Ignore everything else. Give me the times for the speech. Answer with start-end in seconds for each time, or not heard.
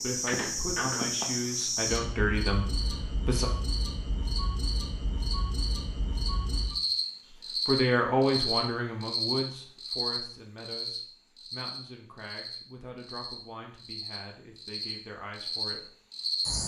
0.0-3.5, 7.7-15.9.